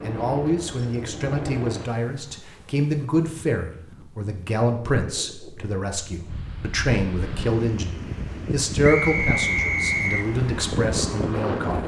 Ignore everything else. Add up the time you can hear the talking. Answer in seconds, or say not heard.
12 s.